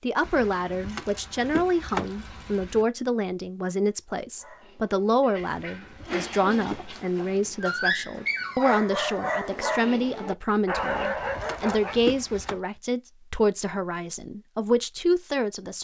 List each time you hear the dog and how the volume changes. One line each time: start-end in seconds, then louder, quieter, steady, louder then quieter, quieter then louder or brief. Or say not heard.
4.3-12.0 louder.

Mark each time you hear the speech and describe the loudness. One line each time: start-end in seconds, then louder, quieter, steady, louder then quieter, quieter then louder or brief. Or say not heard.
0.0-15.7 steady.